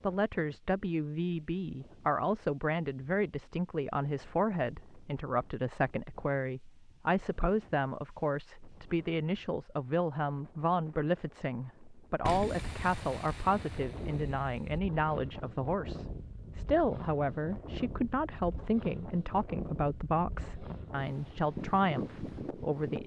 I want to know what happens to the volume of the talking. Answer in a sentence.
The volume of the talking stays about the same.